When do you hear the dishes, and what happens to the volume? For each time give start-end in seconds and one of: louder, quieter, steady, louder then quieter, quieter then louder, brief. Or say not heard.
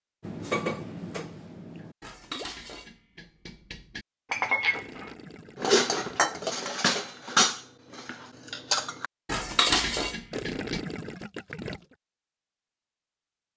0.2-10.8 louder.